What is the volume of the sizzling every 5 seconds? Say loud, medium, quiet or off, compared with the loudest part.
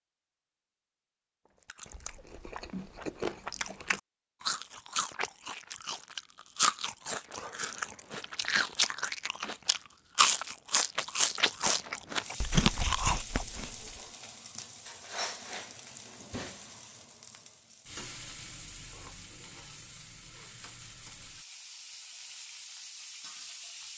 off, off, loud, loud, loud.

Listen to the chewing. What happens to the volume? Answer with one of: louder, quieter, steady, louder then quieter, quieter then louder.
louder.